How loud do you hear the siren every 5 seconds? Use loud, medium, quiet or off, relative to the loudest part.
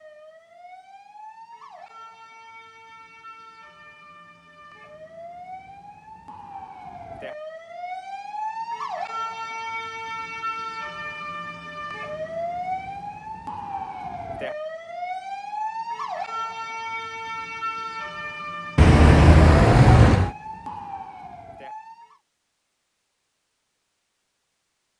quiet, loud, loud, loud, medium.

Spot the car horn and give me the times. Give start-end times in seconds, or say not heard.
18.8-20.3.